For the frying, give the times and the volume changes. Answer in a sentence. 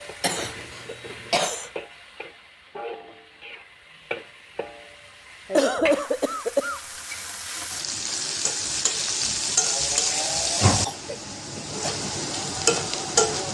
The frying can be heard from 0.0 to 13.5 s, getting louder.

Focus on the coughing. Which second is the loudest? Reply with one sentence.
The volume of the coughing peaks at 6 seconds.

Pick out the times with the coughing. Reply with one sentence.
The coughing can be heard from 0.2 to 1.7 s, from 5.5 to 6.8 s and from 10.7 to 11.8 s.